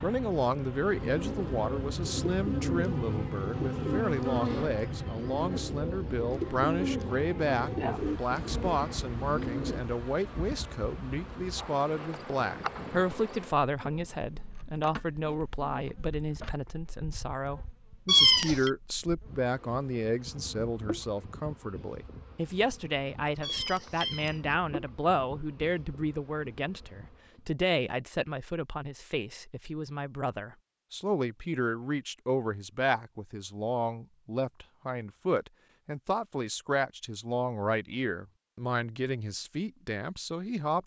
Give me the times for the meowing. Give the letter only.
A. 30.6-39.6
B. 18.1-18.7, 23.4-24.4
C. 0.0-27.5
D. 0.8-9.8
B.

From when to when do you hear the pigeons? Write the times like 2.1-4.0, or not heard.
0.8-9.8.